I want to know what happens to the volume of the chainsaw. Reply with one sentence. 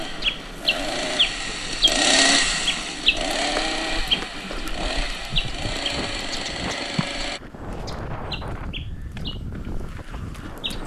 The loudness of the chainsaw goes up, then down.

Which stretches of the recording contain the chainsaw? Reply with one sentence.
The chainsaw can be heard from 0.0 to 7.4 s.